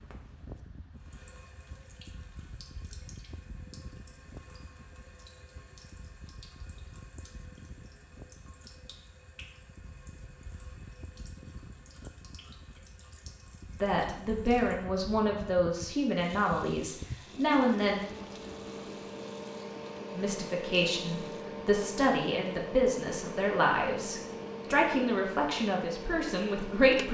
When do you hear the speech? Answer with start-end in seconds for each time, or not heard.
13.8-18.0, 20.1-27.0.